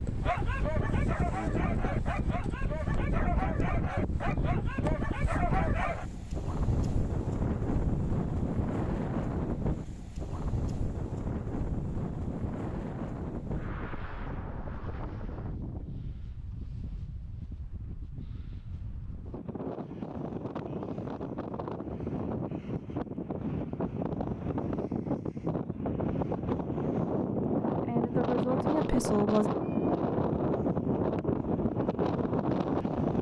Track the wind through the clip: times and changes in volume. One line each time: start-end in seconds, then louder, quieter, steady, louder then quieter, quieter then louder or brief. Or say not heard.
0.0-33.1 quieter then louder.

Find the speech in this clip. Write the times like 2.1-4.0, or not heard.
27.8-29.5.